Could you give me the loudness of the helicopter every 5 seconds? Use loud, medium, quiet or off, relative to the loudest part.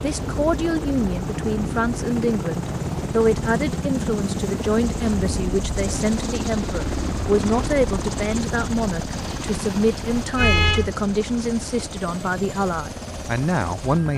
loud, loud, medium.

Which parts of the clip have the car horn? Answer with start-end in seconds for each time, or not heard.
10.2-10.9.